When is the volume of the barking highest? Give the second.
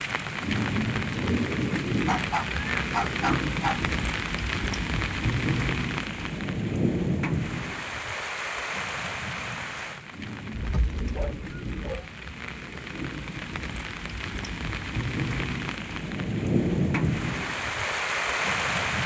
3 s.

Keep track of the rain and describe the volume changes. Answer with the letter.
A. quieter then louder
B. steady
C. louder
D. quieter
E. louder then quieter
A.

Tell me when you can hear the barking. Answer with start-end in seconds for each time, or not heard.
2.0-3.8, 10.5-12.1.